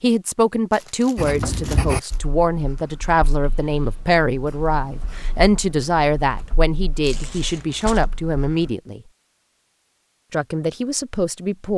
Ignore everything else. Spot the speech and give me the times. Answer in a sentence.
You can hear the speech from 0.0 to 9.0 s and from 10.3 to 11.7 s.